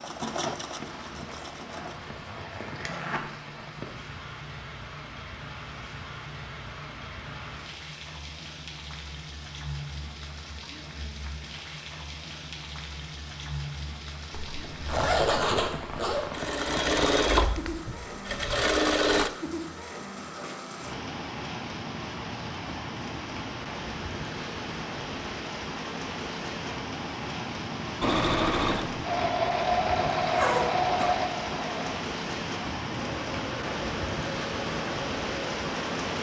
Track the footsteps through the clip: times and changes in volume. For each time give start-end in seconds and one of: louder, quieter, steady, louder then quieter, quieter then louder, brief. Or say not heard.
not heard.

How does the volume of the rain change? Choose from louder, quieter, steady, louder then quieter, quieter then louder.
louder.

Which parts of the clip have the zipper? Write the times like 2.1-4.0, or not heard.
1.7-3.2, 14.3-16.3, 30.2-31.1.